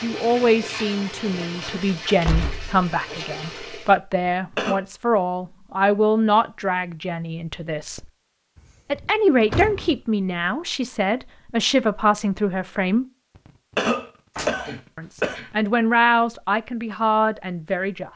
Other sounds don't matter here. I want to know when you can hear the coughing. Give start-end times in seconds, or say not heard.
4.2-4.8, 13.4-15.5.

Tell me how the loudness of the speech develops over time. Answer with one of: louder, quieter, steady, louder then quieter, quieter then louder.
steady.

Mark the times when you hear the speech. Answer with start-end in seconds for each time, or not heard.
0.0-8.1, 8.9-13.1, 14.9-18.1.